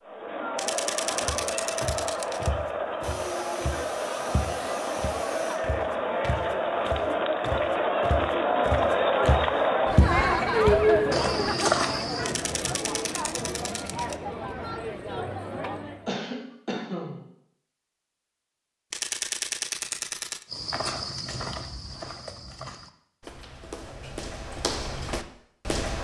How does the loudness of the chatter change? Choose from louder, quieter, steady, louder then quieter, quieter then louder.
louder then quieter.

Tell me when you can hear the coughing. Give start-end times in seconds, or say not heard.
3.0-5.6, 16.1-17.2.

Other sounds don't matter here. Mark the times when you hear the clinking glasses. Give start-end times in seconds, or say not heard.
not heard.